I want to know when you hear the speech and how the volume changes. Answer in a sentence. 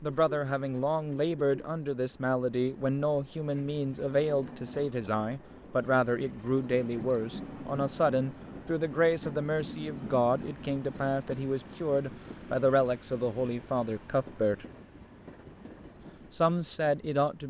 You can hear the speech from 0.0 to 14.7 s, at a steady volume; and briefly from 16.4 to 17.4 s.